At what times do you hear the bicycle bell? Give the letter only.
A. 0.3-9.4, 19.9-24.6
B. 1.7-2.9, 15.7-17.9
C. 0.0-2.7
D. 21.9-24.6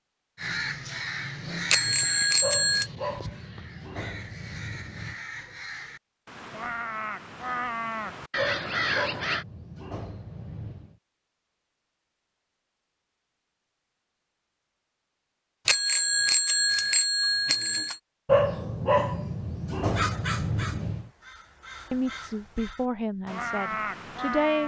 B.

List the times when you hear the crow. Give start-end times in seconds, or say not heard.
0.3-9.4, 19.9-24.6.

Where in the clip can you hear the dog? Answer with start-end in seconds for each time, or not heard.
2.4-5.2, 8.3-10.9, 18.2-21.1.